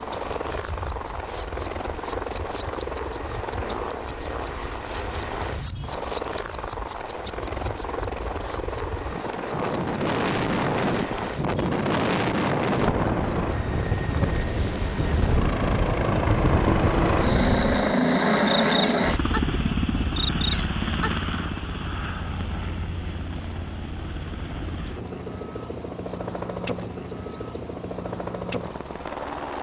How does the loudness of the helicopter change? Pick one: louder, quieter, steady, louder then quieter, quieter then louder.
louder then quieter.